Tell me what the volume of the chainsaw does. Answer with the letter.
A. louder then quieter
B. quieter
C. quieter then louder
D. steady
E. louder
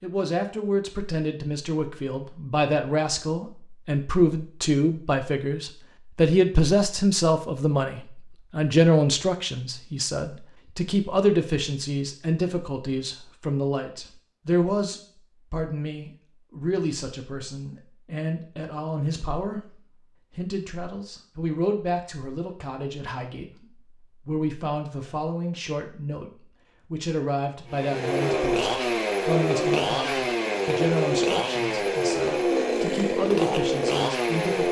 D.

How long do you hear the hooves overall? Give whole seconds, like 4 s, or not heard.
not heard.